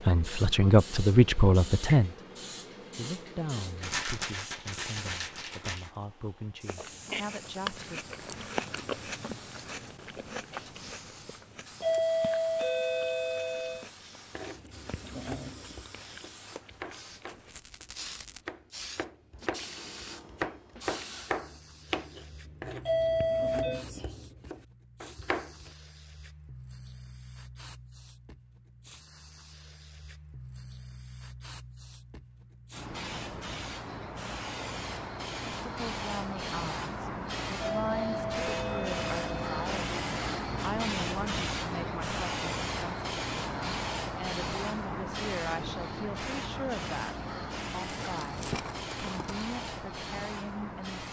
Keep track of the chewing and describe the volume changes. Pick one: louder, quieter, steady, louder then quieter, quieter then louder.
quieter.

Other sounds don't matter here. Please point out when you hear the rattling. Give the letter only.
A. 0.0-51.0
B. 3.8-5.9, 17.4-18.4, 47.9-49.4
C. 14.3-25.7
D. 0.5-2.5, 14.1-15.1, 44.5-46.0
B.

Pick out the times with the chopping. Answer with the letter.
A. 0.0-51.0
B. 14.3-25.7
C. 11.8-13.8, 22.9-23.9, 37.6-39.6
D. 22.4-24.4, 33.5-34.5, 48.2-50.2
B.